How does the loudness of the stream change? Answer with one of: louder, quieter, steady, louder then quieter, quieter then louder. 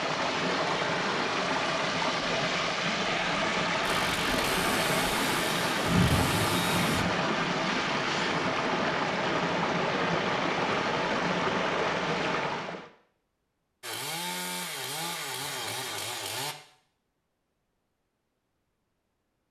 steady.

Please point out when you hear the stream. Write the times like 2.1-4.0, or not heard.
0.0-12.9.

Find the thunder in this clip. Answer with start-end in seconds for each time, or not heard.
5.8-7.1.